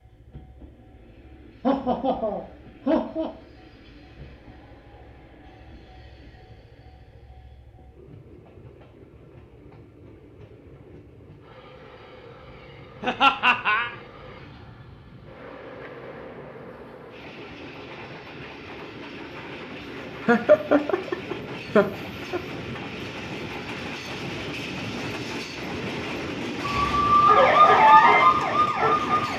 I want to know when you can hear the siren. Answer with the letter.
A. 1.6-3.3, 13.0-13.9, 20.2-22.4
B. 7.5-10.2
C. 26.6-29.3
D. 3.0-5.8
C.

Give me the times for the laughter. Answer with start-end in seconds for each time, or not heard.
1.6-3.3, 13.0-13.9, 20.2-22.4.